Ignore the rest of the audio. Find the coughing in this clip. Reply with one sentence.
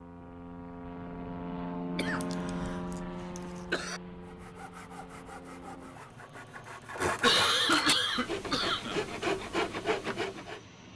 You can hear the coughing from 1.9 to 2.8 s, from 3.4 to 4.0 s and from 7.2 to 9.1 s.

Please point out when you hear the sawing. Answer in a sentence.
You can hear the sawing from 4.2 to 10.6 s.